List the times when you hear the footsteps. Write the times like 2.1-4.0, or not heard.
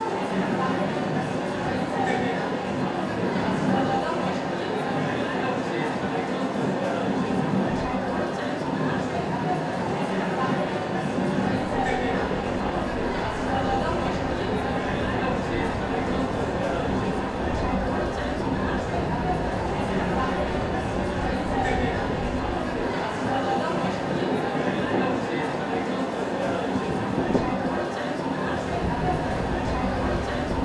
not heard.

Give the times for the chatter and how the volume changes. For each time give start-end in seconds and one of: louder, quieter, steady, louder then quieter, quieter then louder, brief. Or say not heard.
0.0-30.6 steady.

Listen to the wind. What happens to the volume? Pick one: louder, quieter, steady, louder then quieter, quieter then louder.
steady.